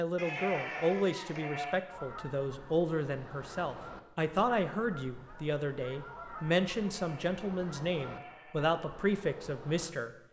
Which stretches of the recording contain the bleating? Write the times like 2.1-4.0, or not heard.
0.1-1.9, 6.8-8.7.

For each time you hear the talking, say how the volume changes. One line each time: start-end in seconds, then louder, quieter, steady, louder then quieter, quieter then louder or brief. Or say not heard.
0.0-10.1 steady.